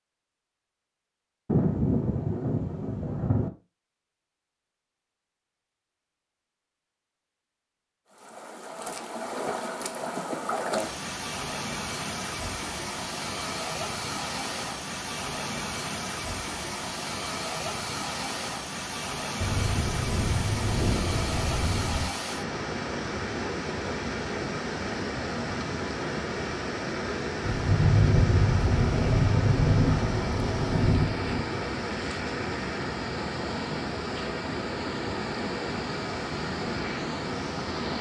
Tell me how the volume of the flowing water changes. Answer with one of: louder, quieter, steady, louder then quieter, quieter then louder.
steady.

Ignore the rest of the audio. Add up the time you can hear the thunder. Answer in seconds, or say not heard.
9 s.